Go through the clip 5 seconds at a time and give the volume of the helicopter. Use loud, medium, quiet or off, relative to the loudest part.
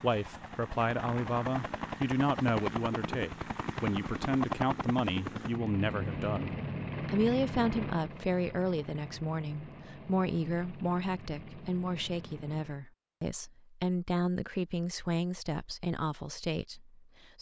loud, loud, medium, off.